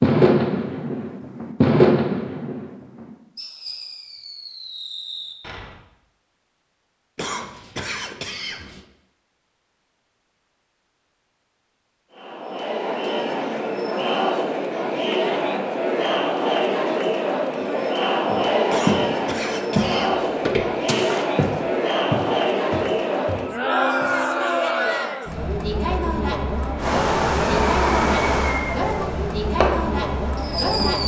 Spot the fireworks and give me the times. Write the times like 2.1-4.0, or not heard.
0.0-5.8, 26.8-31.0.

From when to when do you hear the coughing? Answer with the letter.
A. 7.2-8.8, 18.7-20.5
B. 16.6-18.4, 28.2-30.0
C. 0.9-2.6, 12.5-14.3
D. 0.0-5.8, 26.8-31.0
A.